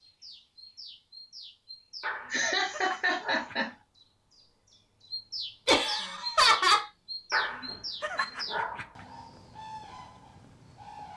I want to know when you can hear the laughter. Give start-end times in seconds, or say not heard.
2.3-3.7, 5.7-6.8.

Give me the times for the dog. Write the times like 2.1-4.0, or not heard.
2.0-3.8, 7.3-9.1.